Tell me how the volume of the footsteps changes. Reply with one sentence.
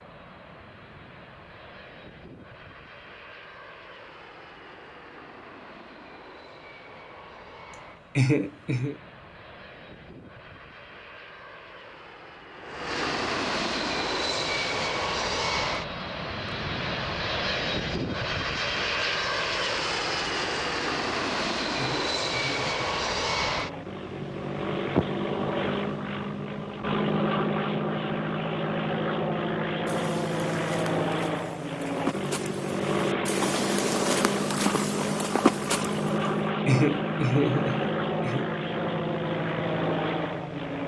The volume of the footsteps goes up.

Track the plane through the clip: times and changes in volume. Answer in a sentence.
You can hear the plane from 0.0 to 40.8 s, getting louder.